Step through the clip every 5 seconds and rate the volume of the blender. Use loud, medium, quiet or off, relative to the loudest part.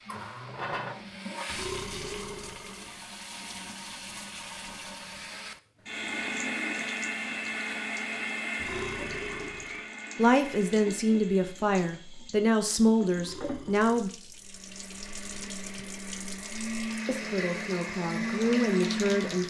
medium, loud, medium, loud.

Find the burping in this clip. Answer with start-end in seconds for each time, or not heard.
1.4-3.0, 8.6-9.9, 13.2-14.2.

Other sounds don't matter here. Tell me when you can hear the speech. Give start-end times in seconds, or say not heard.
10.2-14.1, 17.1-19.4.